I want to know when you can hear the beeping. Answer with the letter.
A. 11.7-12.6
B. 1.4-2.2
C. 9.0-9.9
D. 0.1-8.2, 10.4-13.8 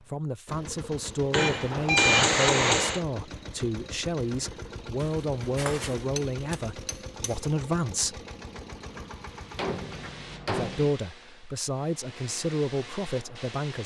B.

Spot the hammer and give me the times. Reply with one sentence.
You can hear the hammer from 1.3 to 3.0 s, from 5.0 to 7.3 s and from 9.6 to 10.9 s.